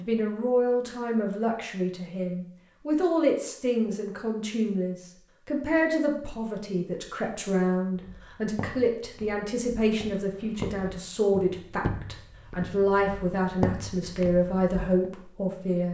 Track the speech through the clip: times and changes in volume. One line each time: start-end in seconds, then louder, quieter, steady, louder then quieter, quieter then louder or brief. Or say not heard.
0.0-15.8 steady.